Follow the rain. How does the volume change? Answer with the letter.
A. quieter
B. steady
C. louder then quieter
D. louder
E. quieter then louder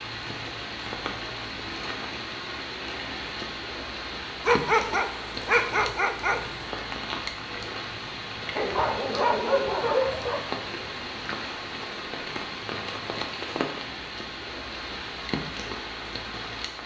B.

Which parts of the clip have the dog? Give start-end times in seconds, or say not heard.
4.5-6.4, 8.6-10.4.